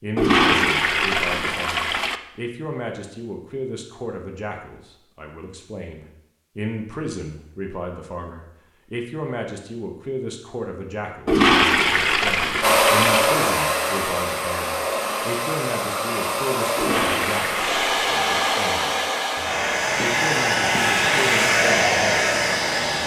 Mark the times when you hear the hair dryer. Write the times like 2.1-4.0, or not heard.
12.6-23.0.